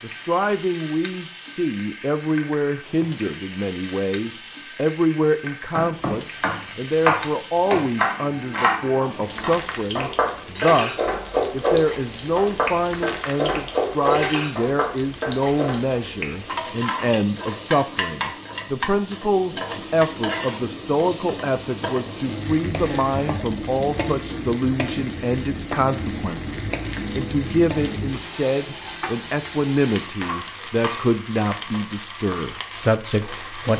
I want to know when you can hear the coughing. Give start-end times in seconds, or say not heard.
not heard.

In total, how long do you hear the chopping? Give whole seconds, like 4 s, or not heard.
10 s.